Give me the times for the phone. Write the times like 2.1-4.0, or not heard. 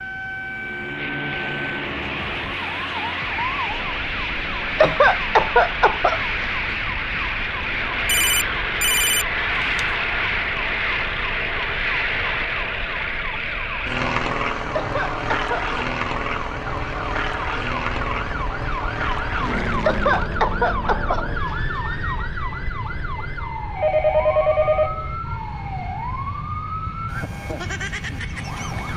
8.1-9.8, 23.8-25.1.